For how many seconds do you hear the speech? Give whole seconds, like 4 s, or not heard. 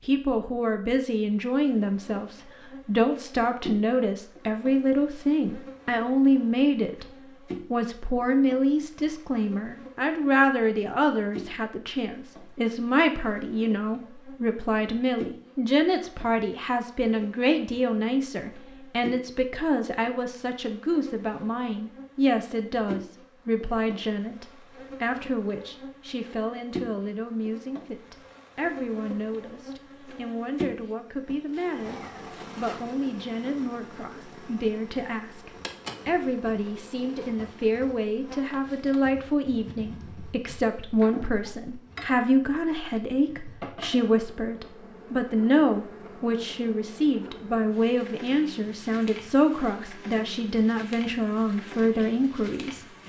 53 s.